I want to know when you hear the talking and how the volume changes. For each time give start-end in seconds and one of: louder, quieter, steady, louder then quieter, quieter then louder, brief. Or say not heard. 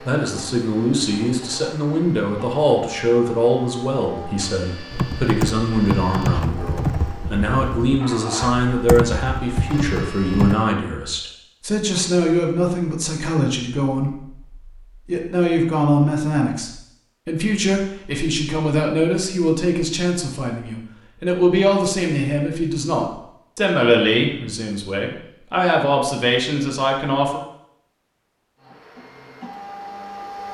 0.0-27.4 steady.